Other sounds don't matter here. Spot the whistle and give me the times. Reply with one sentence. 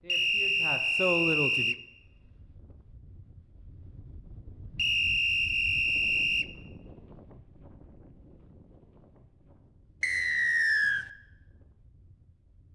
The whistle can be heard from 0.1 to 1.8 s, from 4.8 to 6.5 s and from 10.0 to 11.1 s.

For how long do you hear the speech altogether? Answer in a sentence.
The speech can be heard for 2 seconds in total.